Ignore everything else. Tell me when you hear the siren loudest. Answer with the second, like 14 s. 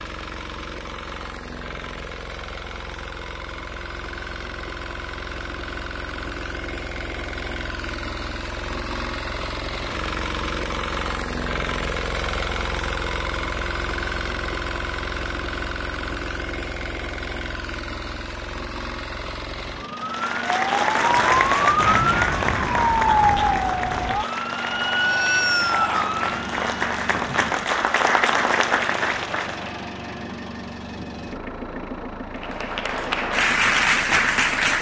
23 s.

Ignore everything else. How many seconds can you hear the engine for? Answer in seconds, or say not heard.
35 s.